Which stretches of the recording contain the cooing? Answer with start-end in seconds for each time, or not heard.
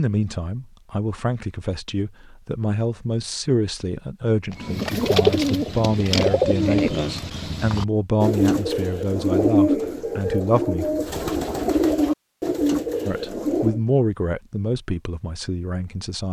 4.5-13.8.